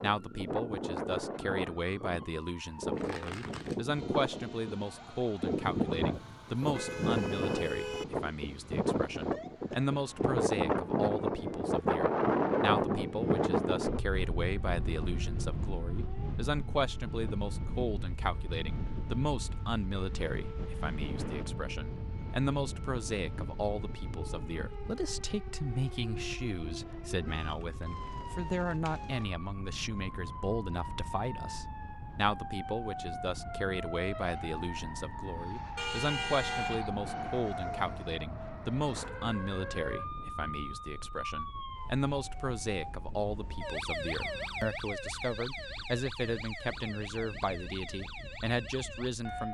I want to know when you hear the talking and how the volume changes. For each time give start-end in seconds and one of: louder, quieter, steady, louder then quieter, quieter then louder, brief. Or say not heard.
0.0-49.4 steady.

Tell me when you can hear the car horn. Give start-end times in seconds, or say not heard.
6.1-8.1, 35.8-36.9.